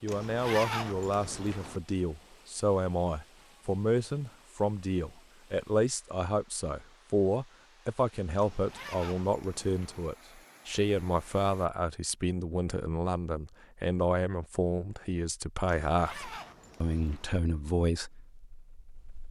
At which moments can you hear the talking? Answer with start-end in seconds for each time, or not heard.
0.0-19.2.